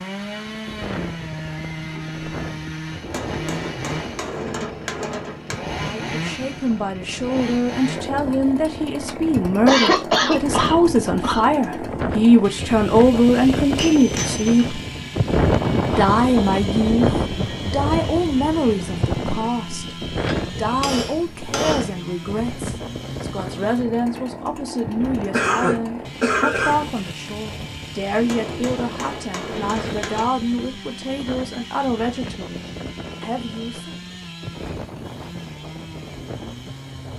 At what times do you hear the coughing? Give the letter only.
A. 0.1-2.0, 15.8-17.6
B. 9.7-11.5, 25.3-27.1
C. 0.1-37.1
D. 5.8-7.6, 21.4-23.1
B.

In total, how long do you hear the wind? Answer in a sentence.
You can hear the wind for 37 seconds altogether.